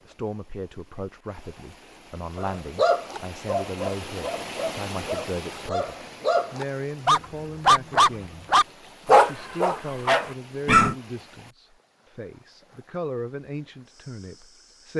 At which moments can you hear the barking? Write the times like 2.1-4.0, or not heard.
2.4-10.9.